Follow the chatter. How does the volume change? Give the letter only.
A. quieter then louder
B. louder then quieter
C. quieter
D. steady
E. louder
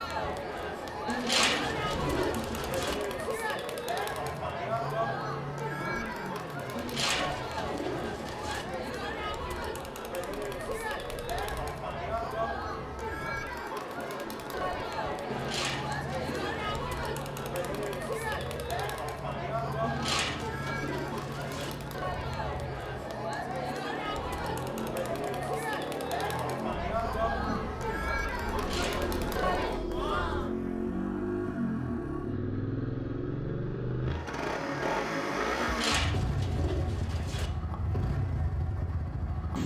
D.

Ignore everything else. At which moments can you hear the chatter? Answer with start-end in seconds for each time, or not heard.
0.0-30.5.